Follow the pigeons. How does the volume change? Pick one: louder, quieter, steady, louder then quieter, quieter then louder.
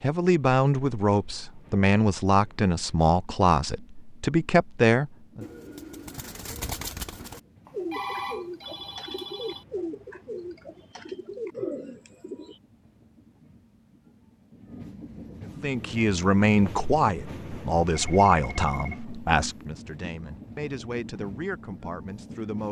steady.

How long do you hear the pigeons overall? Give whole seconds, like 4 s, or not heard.
7 s.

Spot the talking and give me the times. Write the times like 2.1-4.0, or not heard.
0.0-5.5, 15.6-22.6.